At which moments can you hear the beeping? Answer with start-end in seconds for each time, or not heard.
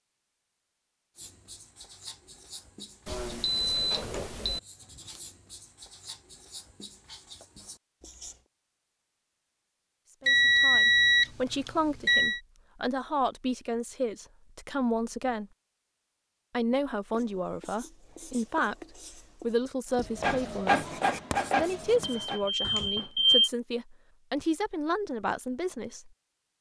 3.0-4.6, 10.2-12.4, 22.0-23.5.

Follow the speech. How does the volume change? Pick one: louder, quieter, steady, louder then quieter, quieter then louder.
steady.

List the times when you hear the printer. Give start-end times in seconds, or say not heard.
20.1-22.4.